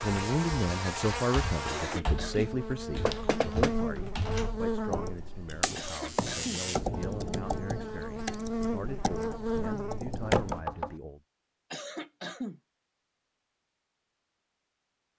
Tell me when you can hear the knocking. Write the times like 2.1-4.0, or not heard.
3.0-3.8, 10.2-11.0.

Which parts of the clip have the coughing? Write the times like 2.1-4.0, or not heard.
1.6-2.5, 5.8-6.7, 11.7-12.6.